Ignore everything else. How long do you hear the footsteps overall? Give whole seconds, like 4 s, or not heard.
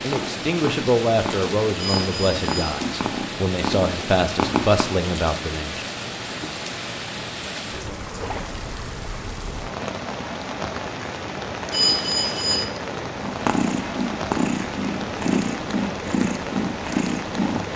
not heard.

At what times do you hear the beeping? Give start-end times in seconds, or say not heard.
1.8-2.7, 11.7-12.7.